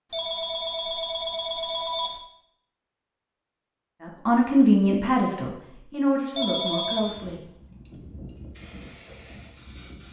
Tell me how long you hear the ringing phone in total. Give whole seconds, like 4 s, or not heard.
3 s.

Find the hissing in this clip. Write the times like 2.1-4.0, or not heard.
6.9-10.0.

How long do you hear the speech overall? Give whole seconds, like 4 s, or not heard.
3 s.